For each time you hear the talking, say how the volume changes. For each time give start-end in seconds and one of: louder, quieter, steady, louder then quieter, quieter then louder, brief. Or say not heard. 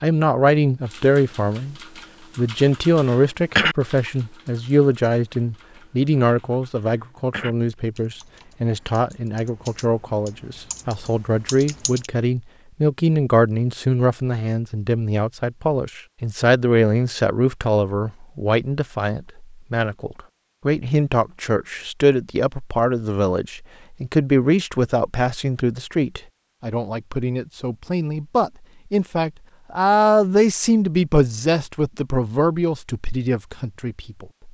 0.0-1.8 brief
2.4-34.5 steady.